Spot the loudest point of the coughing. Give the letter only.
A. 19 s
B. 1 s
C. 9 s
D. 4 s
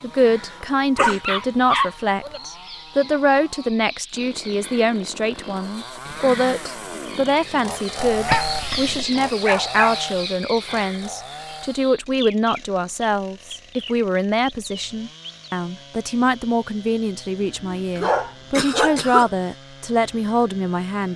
A.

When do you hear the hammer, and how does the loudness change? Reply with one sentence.
You can't hear the hammer here.